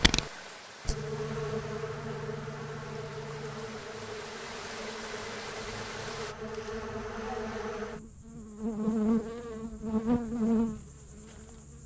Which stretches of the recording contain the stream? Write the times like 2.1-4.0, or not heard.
0.0-6.3.